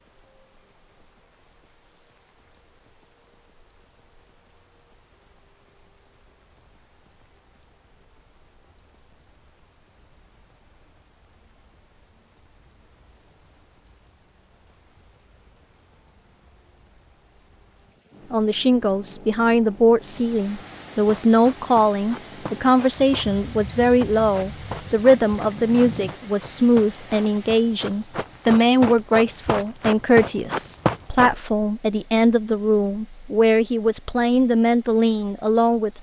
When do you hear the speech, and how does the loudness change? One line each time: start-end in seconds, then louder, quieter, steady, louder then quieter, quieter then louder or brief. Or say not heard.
18.3-35.9 steady.